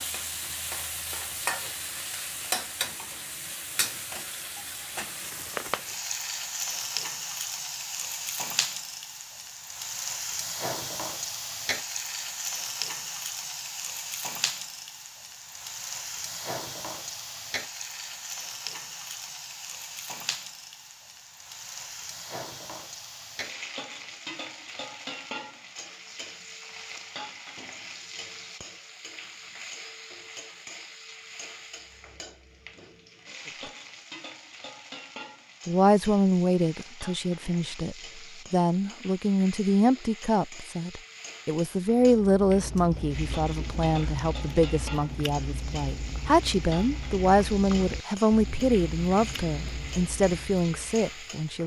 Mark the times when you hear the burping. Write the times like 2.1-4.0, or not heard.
not heard.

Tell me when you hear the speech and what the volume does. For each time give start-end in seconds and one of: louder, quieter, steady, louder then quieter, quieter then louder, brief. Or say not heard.
35.6-51.6 steady.